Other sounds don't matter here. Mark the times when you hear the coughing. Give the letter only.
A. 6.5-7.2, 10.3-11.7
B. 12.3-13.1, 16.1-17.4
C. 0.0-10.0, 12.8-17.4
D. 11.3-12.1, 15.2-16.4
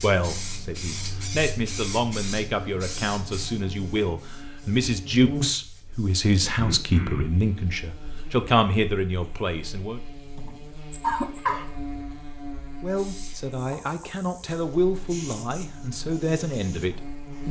A.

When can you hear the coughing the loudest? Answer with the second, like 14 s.
11 s.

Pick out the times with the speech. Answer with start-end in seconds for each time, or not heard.
0.0-10.0, 12.8-17.4.